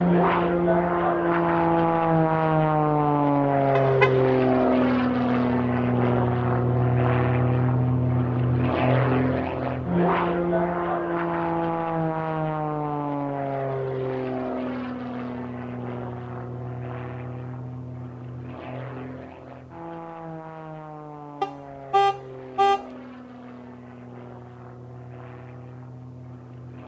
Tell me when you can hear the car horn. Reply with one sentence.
The car horn can be heard from 3.8 to 4.2 s and from 21.4 to 22.9 s.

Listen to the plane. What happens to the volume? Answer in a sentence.
The volume of the plane goes down.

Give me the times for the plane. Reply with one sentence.
The plane can be heard from 0.0 to 26.8 s.